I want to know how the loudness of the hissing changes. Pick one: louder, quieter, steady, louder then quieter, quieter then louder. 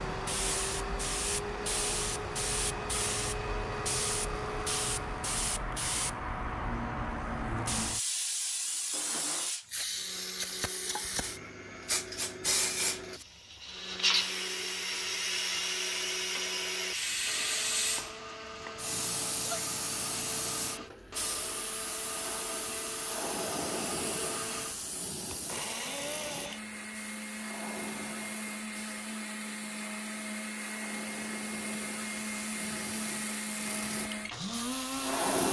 quieter.